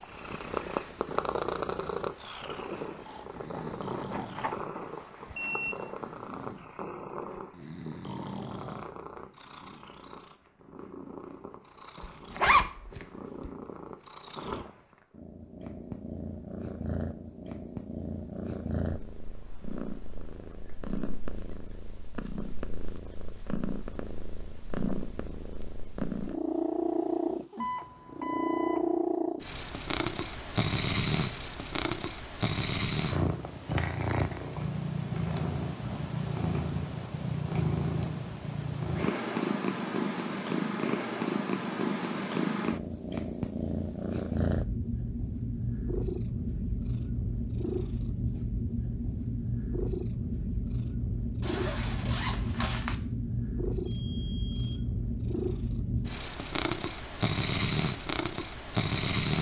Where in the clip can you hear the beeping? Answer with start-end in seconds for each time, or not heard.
5.3-6.5, 27.6-29.0, 53.9-54.9.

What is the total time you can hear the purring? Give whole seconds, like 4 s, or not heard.
59 s.